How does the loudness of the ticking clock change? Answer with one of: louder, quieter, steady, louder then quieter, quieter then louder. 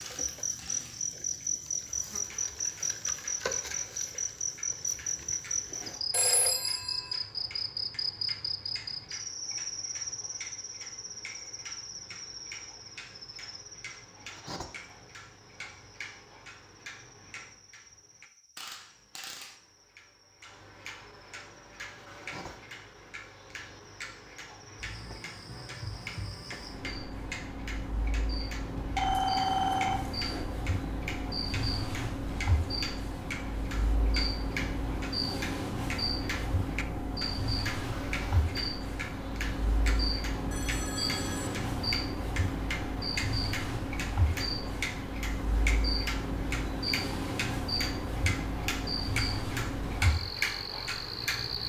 louder.